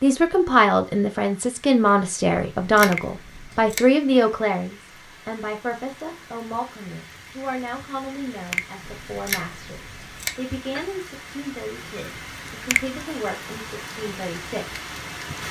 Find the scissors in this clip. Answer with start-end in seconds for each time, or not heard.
2.5-3.8, 8.8-10.3.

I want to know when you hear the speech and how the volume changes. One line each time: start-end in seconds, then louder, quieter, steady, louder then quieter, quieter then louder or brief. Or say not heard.
0.0-14.8 quieter.